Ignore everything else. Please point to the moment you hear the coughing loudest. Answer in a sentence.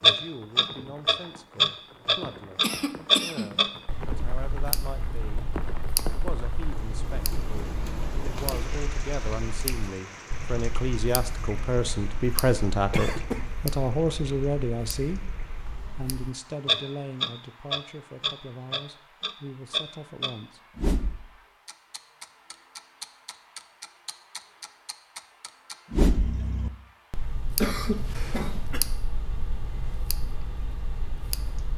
The loudest moment of the coughing is at 28 seconds.